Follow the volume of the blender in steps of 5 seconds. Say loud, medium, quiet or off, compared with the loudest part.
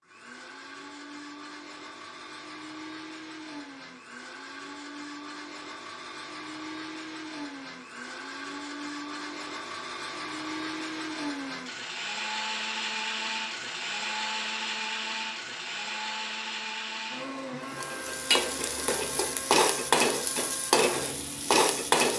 medium, medium, loud, loud, medium.